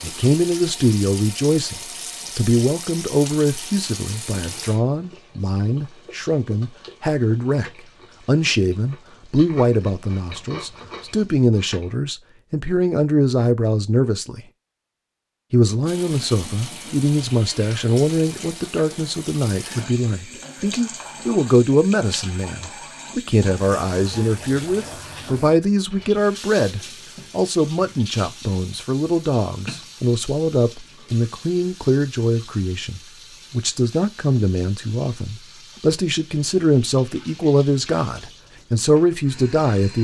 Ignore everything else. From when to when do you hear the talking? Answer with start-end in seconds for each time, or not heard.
0.0-14.4, 15.5-39.9.